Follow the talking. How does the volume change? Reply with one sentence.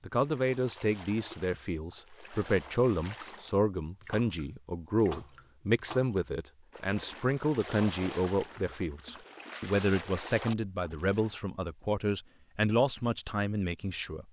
The loudness of the talking stays about the same.